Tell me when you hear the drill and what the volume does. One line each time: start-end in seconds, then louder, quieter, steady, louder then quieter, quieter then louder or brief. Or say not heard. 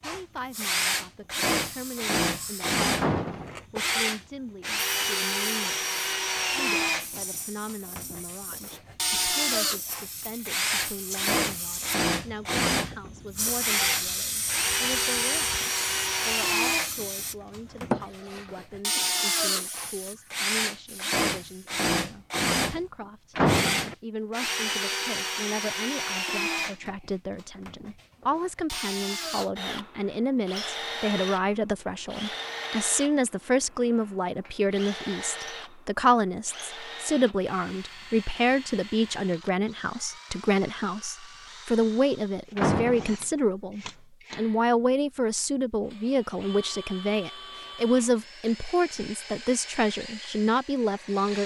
0.0-51.4 quieter.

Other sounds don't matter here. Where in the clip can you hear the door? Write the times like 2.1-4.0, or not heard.
3.0-3.6, 23.4-23.9, 42.5-43.1.